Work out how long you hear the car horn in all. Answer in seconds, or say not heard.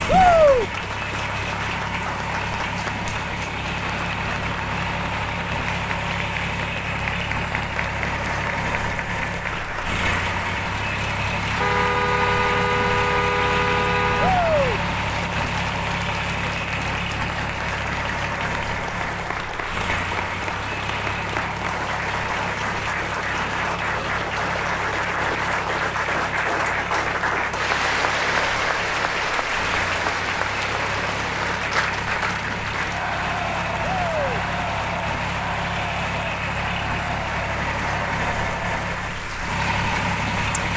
3 s.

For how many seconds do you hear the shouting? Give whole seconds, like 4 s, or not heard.
2 s.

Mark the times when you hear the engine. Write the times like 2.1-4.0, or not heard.
0.0-40.7.